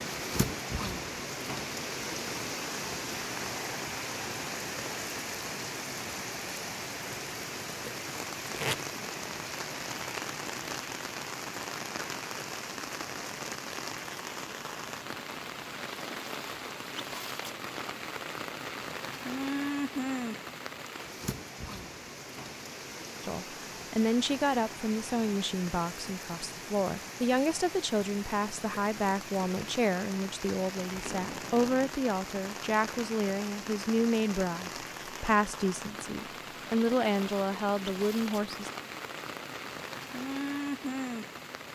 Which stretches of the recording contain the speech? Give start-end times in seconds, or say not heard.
23.2-38.7.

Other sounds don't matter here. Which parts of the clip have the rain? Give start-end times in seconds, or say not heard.
0.0-41.7.